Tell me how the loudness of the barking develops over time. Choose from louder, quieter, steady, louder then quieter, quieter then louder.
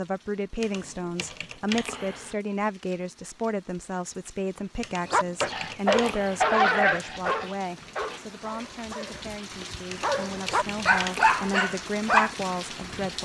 quieter then louder.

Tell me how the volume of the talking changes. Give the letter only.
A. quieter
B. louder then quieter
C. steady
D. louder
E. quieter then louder
E.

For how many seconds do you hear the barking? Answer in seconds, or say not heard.
7 s.